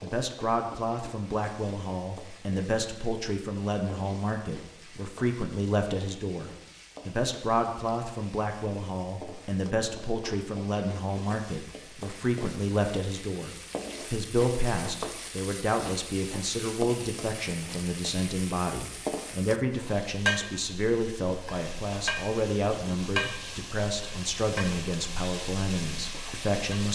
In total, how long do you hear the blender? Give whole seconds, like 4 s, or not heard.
not heard.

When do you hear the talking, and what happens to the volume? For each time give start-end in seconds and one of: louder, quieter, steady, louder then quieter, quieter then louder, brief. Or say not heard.
0.0-26.9 steady.